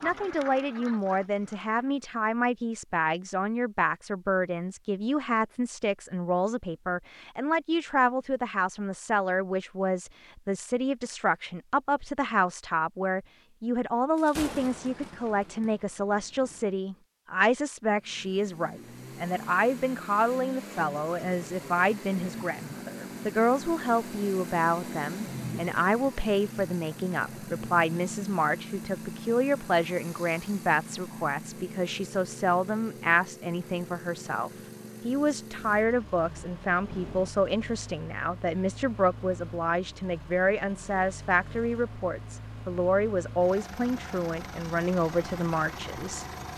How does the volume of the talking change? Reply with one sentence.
The volume of the talking stays about the same.